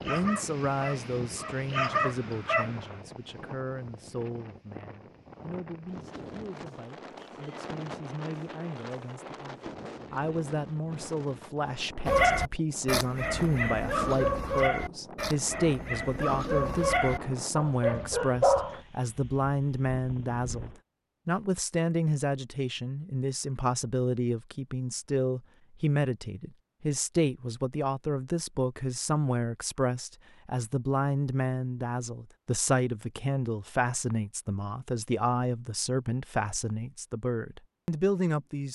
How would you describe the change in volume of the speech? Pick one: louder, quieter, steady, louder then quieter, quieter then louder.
louder.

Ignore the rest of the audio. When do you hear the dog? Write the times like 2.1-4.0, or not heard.
0.0-3.0, 12.1-18.8.